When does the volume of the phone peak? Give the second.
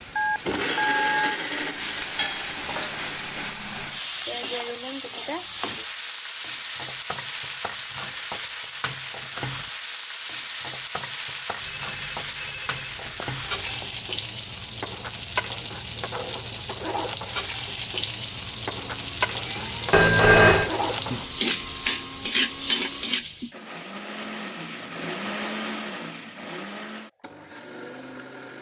20 s.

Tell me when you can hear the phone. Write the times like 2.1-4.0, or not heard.
0.1-1.4, 11.6-13.8, 19.9-20.7.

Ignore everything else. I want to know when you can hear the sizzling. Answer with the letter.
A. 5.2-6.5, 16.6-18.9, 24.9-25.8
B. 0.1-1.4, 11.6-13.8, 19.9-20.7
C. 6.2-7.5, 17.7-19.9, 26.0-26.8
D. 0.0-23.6
D.